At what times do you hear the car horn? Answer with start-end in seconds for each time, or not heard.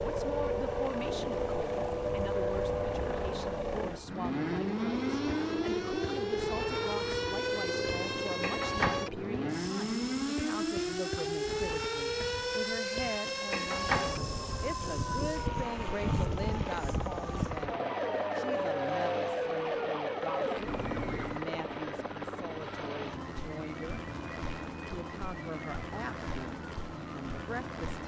not heard.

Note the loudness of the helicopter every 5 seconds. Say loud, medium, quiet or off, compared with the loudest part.
loud, loud, medium, loud, loud, loud.